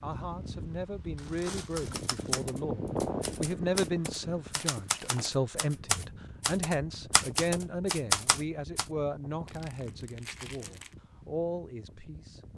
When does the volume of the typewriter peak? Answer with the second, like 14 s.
8 s.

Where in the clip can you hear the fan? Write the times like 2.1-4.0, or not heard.
0.0-12.5.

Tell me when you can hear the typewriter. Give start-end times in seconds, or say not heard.
1.8-8.8.